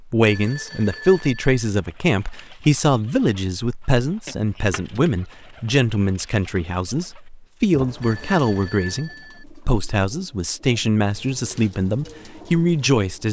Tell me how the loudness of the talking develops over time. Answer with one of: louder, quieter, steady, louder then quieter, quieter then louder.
steady.